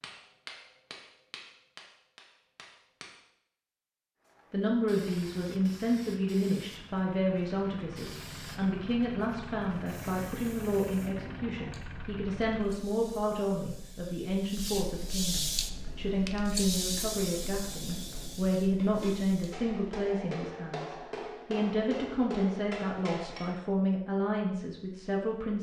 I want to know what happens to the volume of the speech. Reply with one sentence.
The loudness of the speech stays about the same.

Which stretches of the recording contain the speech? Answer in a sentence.
You can hear the speech from 4.5 to 25.5 s.